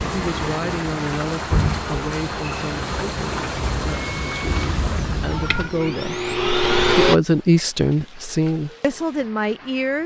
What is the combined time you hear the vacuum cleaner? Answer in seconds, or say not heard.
7 s.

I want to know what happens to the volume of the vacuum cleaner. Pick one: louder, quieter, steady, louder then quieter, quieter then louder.
louder.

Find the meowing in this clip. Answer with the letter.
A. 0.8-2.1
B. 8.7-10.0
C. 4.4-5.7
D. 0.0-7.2
C.